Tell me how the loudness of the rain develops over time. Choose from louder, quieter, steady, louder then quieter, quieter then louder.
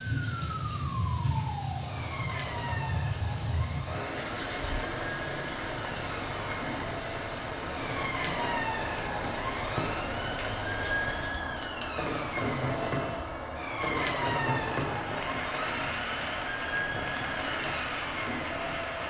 steady.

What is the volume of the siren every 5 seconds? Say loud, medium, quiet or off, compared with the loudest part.
medium, loud, loud, loud.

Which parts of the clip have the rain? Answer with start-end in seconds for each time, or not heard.
0.0-19.0.